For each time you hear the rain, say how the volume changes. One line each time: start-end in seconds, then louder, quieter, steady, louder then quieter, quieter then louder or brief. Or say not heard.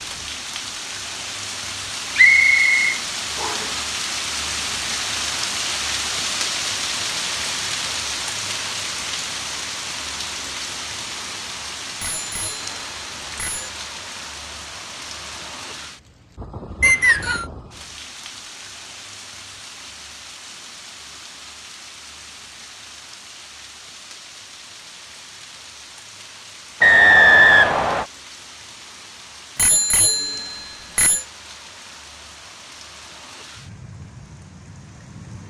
0.0-35.4 quieter.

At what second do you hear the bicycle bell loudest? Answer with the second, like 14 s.
30 s.